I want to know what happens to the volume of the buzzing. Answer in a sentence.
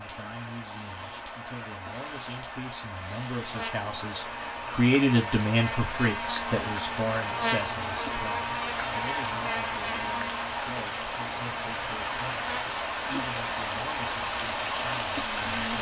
The volume of the buzzing goes up, then down.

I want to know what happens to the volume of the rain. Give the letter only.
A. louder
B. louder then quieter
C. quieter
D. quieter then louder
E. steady
A.